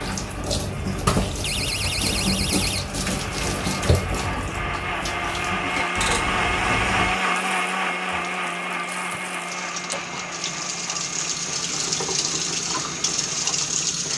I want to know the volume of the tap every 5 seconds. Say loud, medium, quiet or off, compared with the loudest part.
loud, medium, loud.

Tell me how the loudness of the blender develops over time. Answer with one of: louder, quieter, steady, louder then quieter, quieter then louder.
louder then quieter.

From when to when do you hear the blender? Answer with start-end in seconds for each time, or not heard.
0.0-14.1.